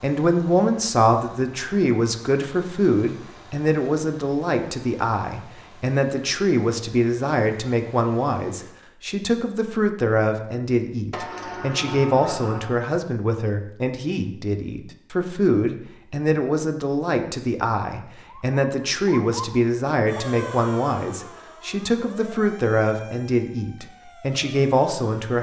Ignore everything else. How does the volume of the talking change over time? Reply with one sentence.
The loudness of the talking stays about the same.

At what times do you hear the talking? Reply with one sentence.
The talking can be heard from 0.0 to 25.3 s.